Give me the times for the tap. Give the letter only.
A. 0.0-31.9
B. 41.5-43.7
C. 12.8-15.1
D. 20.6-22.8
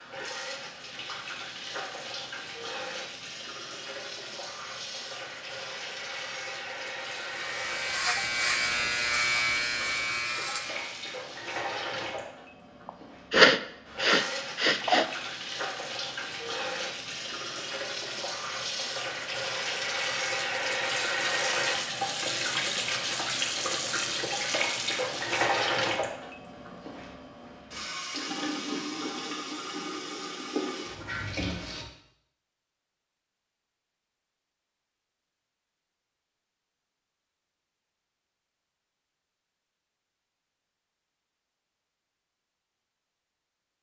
A.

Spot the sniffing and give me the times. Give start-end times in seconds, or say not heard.
12.8-15.1.